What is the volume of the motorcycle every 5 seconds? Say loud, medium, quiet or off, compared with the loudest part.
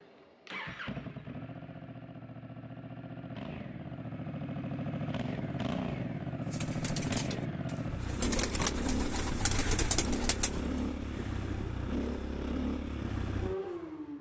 medium, loud, loud.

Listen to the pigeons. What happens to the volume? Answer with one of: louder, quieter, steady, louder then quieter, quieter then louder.
louder then quieter.